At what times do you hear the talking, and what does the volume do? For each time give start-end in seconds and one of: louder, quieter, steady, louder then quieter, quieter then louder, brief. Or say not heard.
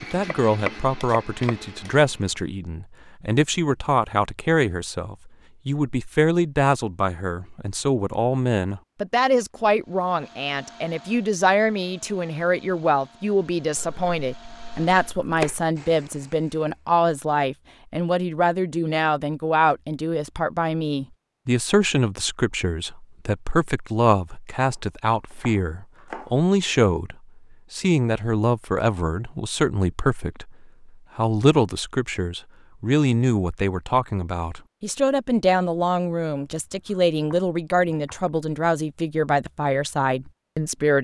0.0-40.9 steady.